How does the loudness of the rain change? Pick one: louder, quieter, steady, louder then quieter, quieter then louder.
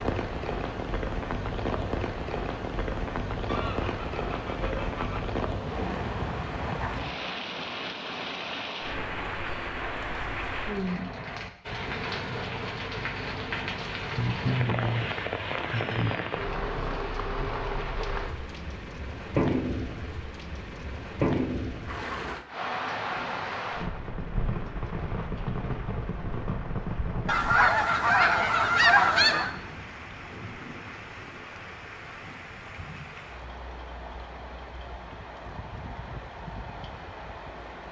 quieter.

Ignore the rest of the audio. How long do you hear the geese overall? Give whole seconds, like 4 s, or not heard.
6 s.